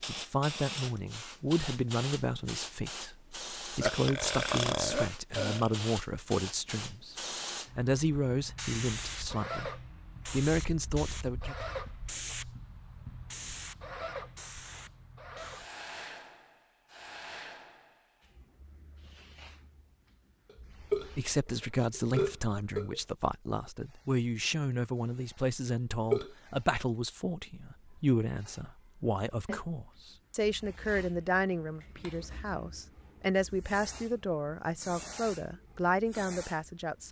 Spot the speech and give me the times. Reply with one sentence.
You can hear the speech from 0.0 to 7.2 s, from 7.8 to 11.6 s and from 21.1 to 37.0 s.